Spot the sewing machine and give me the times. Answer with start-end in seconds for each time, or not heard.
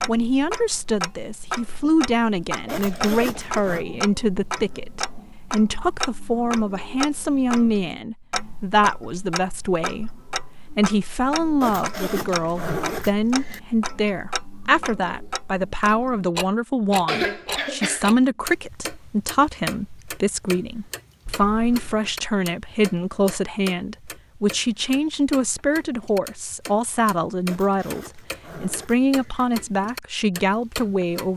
not heard.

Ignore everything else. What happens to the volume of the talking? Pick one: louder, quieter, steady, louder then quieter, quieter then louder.
steady.